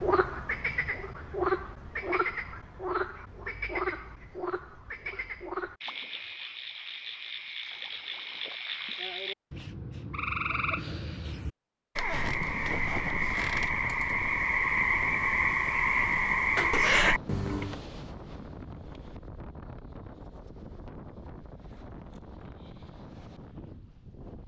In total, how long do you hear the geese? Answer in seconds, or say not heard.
not heard.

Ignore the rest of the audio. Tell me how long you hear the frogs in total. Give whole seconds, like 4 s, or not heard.
18 s.